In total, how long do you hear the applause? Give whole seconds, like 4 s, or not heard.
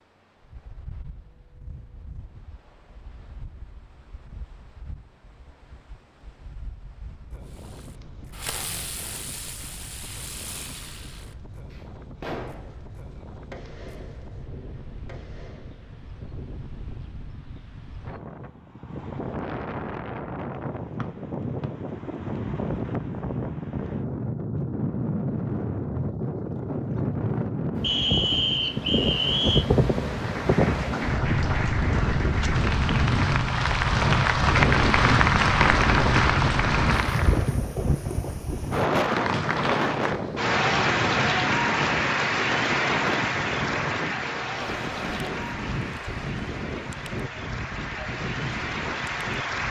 18 s.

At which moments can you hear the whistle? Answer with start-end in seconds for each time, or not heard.
21.0-21.7, 27.8-29.6.